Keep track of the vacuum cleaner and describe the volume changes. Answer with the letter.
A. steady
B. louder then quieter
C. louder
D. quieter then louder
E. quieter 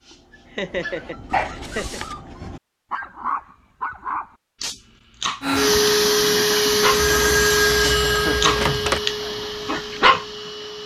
E.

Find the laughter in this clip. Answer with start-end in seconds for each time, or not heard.
0.1-2.0, 7.8-8.6.